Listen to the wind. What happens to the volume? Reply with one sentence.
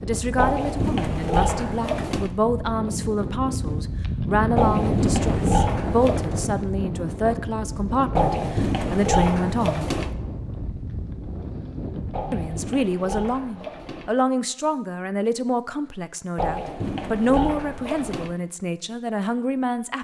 The loudness of the wind goes up, then down.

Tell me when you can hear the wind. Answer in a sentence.
The wind can be heard from 0.0 to 12.9 s.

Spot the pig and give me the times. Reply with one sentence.
The pig can be heard from 0.3 to 2.3 s, from 4.5 to 6.3 s, from 8.2 to 10.2 s, from 12.1 to 14.2 s and from 16.4 to 18.4 s.